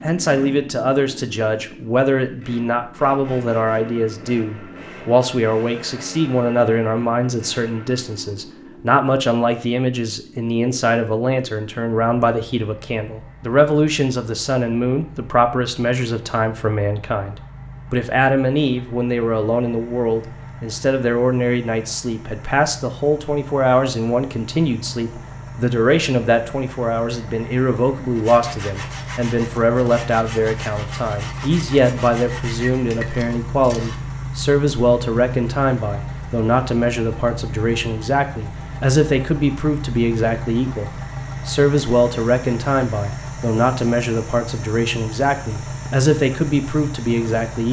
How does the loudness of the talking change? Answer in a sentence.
The volume of the talking stays about the same.